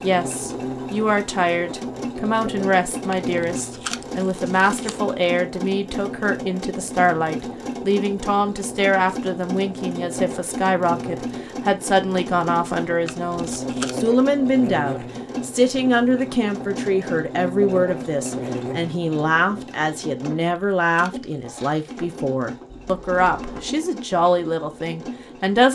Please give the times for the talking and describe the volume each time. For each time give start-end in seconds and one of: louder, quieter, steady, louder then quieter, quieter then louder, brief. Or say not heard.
0.0-25.7 steady.